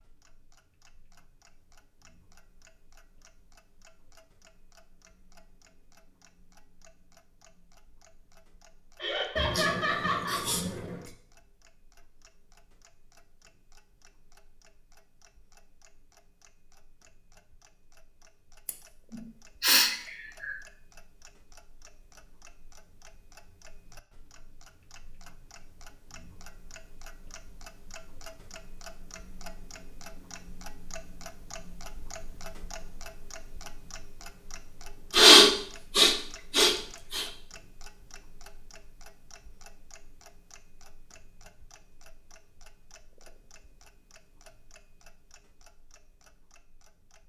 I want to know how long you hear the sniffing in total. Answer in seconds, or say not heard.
6 s.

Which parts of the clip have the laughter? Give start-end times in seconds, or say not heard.
9.0-10.4.